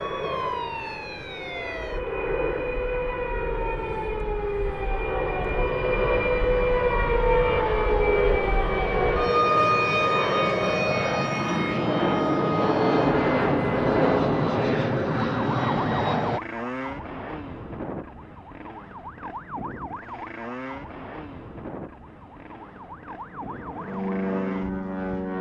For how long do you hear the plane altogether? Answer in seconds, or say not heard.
20 s.